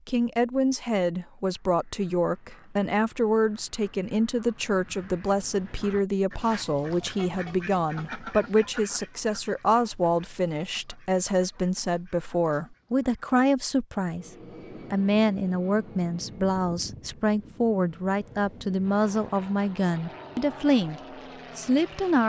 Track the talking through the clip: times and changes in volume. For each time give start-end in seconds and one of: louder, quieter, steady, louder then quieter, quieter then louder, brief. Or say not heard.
0.1-14.3 steady
14.9-22.2 steady.